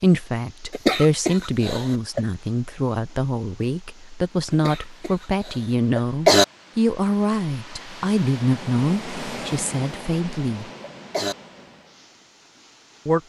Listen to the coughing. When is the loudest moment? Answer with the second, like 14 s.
6 s.